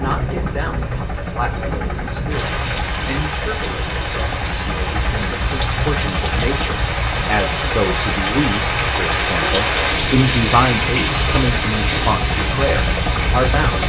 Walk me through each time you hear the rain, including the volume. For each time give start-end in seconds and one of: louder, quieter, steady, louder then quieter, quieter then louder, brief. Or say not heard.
0.0-13.8 louder.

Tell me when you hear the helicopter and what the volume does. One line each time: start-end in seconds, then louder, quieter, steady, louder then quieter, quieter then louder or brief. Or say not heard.
0.0-13.8 steady.